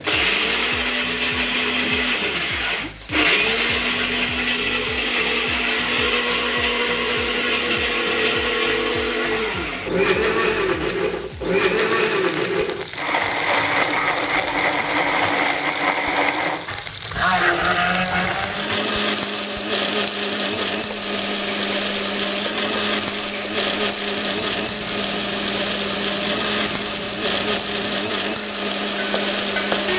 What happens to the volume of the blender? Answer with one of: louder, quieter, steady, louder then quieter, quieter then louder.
steady.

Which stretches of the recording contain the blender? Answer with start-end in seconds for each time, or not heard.
0.0-29.9.